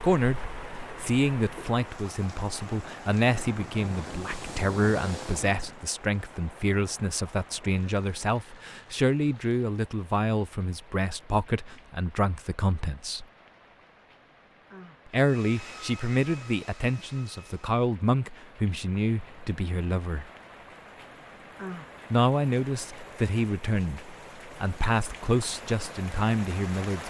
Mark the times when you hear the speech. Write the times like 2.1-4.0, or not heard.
0.0-0.4, 1.0-13.2, 15.1-20.2, 22.1-27.0.